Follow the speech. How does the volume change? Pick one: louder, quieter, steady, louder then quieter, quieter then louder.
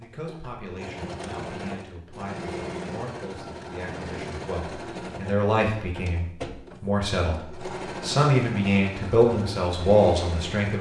louder.